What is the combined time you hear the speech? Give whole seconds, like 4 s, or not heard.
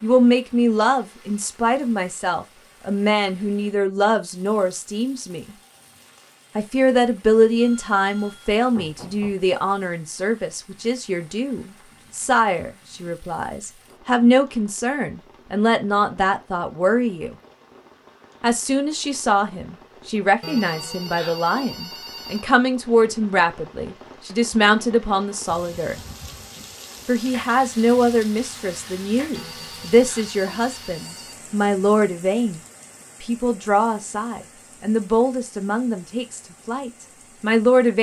34 s.